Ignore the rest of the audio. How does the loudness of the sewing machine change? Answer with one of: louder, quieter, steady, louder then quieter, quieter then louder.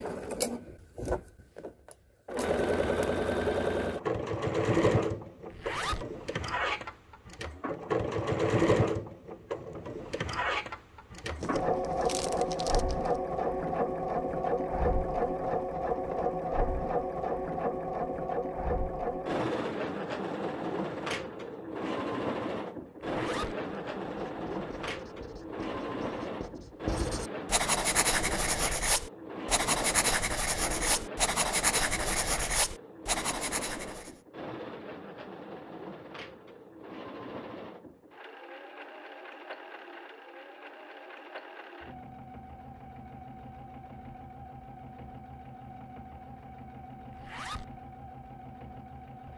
quieter.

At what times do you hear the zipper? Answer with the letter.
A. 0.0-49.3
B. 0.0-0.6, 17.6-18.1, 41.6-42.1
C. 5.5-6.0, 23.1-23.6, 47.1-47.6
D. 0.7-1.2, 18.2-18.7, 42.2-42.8
C.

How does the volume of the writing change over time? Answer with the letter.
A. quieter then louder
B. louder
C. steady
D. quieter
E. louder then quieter
B.